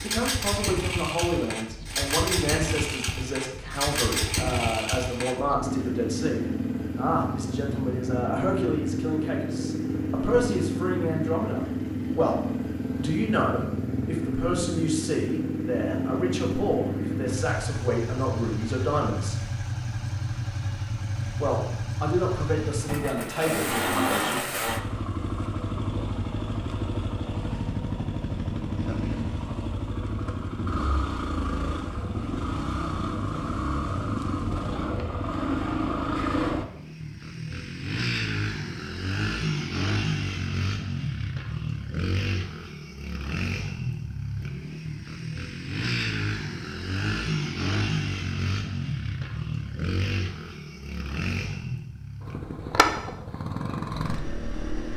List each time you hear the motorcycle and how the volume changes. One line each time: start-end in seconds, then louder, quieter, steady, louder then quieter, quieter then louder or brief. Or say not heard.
0.0-54.9 steady.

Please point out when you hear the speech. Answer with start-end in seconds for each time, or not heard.
0.0-19.4, 21.4-24.4.